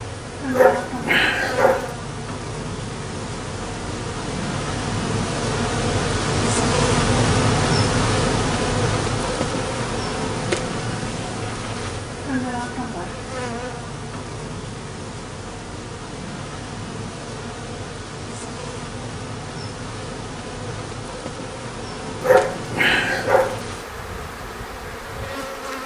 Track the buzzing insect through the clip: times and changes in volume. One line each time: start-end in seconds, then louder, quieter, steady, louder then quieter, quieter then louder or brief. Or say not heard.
0.0-25.8 louder then quieter.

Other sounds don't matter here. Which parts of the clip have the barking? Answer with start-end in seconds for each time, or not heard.
0.5-1.9, 22.2-23.6.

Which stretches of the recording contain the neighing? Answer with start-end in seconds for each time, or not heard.
not heard.